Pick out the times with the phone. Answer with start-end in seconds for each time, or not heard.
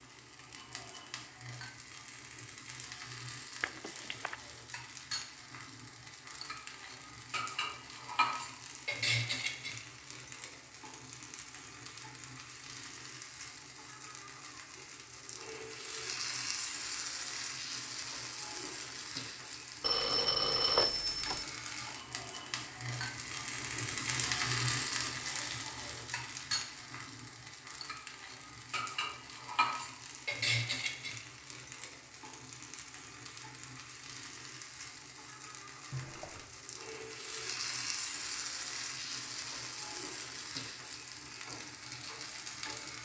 3.6-4.3, 19.8-21.4, 35.9-36.5.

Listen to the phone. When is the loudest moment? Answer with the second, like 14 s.
21 s.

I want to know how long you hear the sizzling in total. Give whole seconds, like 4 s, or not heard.
43 s.